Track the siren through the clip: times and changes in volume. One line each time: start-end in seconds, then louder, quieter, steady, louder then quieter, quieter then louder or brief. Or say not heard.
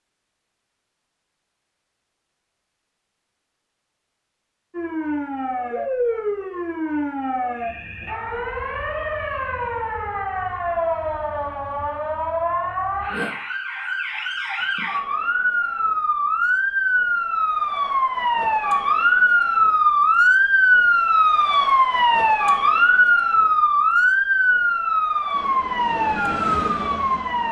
4.7-27.4 louder.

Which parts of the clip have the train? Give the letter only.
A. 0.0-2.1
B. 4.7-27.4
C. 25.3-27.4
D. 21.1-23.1
C.